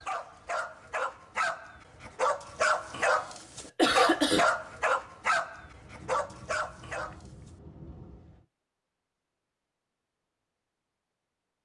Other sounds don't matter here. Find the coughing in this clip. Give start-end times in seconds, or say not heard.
3.8-4.5.